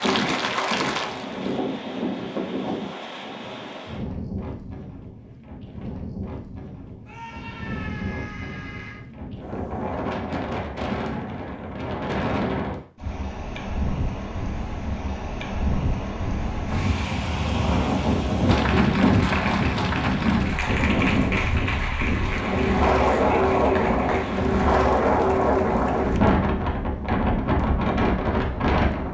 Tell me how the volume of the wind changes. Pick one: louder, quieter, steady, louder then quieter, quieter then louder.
louder.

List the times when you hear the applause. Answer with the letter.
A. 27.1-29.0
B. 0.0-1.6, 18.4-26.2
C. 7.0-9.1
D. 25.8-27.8
B.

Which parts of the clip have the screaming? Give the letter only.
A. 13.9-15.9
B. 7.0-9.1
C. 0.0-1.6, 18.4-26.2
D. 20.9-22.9
B.